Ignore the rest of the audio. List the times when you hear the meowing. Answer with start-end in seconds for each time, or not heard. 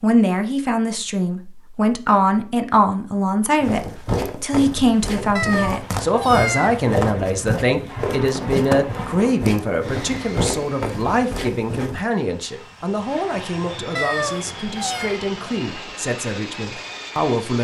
5.3-6.8, 13.9-15.2.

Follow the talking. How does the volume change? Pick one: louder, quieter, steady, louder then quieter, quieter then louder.
quieter.